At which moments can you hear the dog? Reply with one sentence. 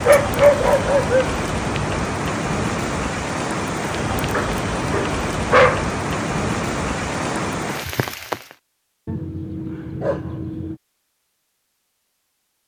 You can hear the dog from 0.1 to 1.4 s, from 4.3 to 5.8 s and from 9.1 to 10.8 s.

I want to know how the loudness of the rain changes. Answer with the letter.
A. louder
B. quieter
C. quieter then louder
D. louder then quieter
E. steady
E.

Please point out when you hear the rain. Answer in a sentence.
The rain can be heard from 0.0 to 8.6 s.